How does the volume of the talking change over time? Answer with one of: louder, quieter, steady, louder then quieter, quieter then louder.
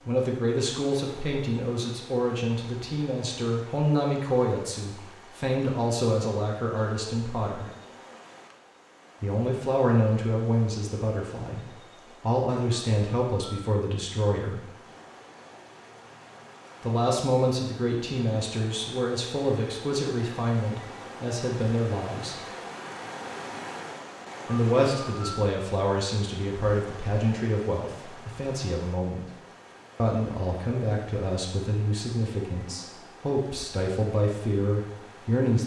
steady.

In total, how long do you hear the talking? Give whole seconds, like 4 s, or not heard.
29 s.